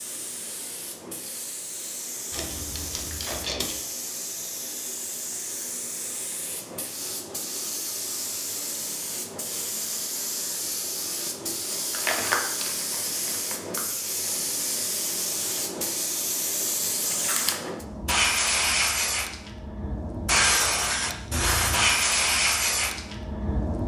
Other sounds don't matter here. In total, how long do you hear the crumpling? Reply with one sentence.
The crumpling can be heard for 4 seconds in total.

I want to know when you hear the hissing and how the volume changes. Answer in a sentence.
You can hear the hissing from 0.0 to 23.8 s, getting louder.